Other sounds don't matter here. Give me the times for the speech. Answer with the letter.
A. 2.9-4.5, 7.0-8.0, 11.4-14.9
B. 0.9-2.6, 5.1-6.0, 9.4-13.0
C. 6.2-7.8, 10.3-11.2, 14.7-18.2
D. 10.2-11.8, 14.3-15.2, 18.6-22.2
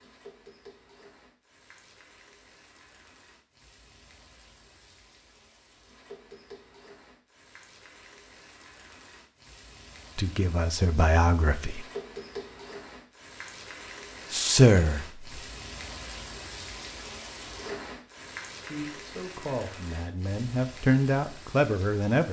D.